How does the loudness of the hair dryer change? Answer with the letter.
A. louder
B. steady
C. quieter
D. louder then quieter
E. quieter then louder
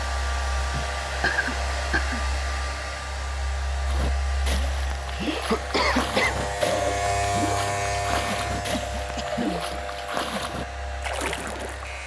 C.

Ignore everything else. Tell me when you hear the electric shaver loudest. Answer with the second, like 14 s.
7 s.